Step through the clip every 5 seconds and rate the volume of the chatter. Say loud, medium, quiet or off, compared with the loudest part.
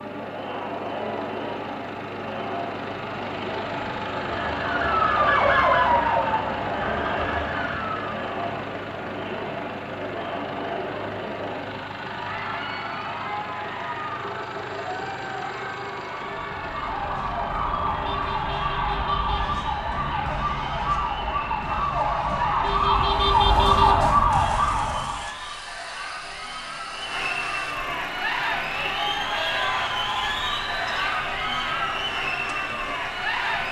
medium, medium, medium, medium, medium, loud, loud.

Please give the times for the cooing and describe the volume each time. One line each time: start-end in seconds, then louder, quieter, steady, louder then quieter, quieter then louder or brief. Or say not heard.
not heard.